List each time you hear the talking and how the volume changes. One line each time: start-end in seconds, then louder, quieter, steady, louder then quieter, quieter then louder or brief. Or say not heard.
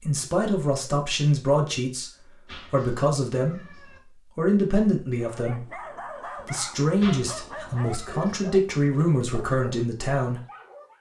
0.0-10.4 steady.